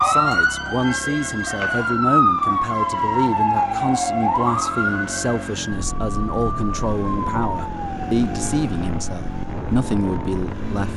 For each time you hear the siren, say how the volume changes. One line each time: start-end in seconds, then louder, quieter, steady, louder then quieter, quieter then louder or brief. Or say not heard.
0.0-10.9 quieter.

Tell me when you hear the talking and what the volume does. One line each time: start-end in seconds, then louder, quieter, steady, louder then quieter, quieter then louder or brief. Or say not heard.
0.0-10.9 steady.